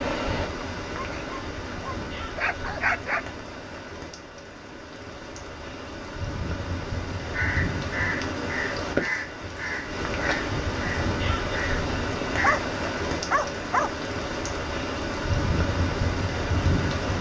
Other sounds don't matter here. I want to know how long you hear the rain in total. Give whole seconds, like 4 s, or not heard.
17 s.